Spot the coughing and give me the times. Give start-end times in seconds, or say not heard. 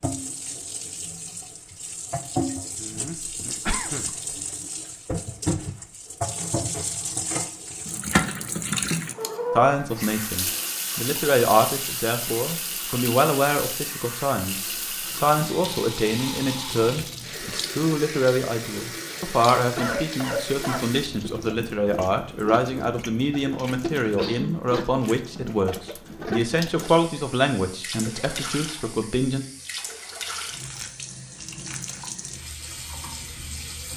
2.8-4.1, 19.8-20.9, 24.0-24.6.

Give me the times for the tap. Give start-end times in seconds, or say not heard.
0.0-33.9.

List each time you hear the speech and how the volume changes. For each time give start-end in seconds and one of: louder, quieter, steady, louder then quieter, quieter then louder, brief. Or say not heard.
9.6-29.4 steady.